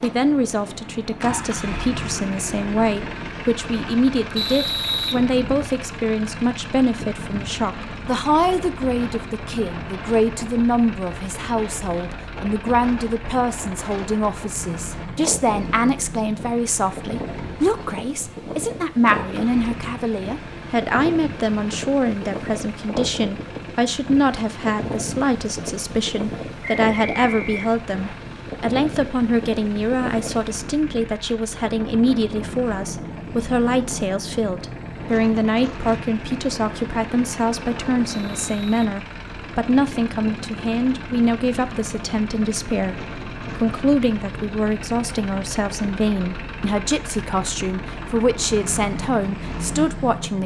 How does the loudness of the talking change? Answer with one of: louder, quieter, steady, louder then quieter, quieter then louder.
steady.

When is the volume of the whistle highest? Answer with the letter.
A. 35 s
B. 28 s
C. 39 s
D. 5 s
D.